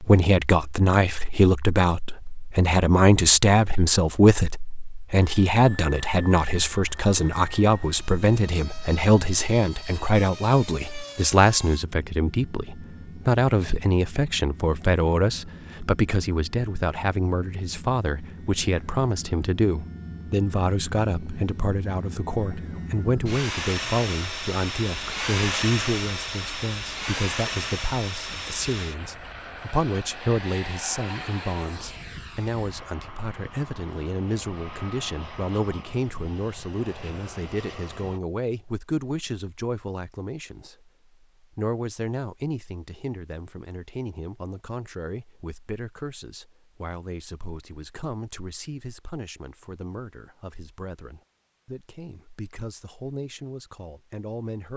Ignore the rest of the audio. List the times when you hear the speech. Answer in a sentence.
The speech can be heard from 0.0 to 54.7 s.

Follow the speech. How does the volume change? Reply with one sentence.
The volume of the speech goes down.